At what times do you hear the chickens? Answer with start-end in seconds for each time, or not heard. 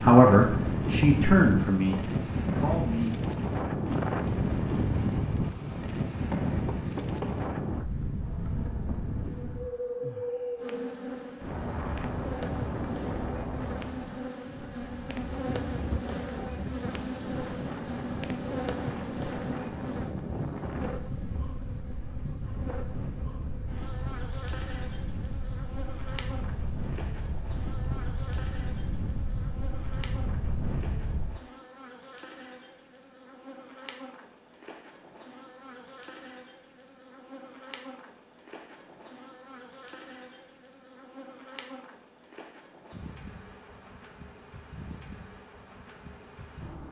not heard.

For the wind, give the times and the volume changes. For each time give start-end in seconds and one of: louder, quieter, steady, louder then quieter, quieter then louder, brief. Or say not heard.
0.0-31.4 quieter.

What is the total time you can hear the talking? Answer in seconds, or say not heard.
3 s.